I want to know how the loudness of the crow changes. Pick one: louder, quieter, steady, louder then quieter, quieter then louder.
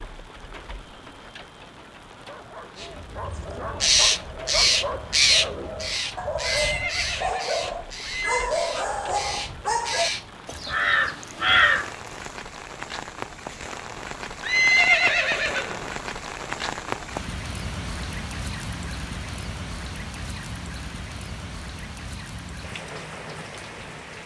quieter then louder.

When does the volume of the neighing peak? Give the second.
15 s.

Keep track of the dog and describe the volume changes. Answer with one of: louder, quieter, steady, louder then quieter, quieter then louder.
louder.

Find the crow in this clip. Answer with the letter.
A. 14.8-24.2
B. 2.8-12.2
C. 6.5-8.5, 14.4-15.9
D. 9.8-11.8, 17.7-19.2
B.